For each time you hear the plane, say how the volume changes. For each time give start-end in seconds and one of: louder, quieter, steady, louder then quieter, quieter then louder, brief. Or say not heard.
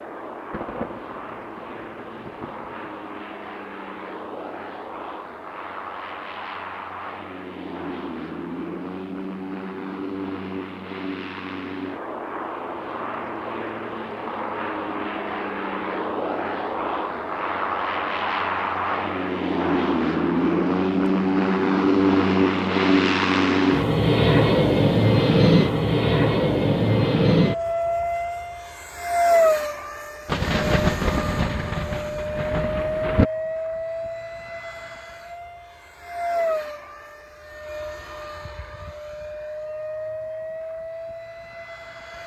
0.0-42.2 louder then quieter.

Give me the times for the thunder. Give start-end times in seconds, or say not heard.
0.5-3.0, 30.2-33.2.